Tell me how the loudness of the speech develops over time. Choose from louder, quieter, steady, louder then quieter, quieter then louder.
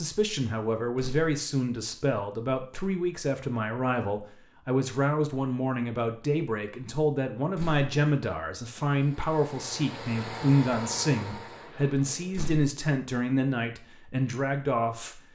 steady.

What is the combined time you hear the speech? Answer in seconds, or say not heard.
15 s.